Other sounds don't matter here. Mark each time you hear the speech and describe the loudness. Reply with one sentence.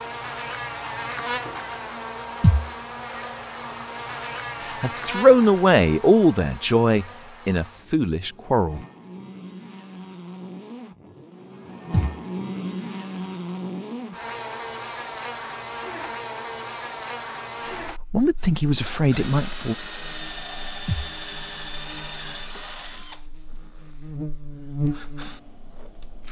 You can hear the speech from 4.7 to 8.8 s, getting quieter; and briefly from 17.6 to 19.8 s.